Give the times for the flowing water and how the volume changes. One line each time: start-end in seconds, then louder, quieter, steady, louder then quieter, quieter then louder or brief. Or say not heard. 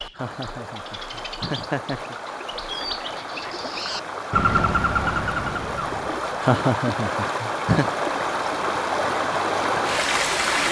0.0-10.6 louder.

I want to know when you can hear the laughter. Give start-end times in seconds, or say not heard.
0.1-2.1, 6.4-7.9.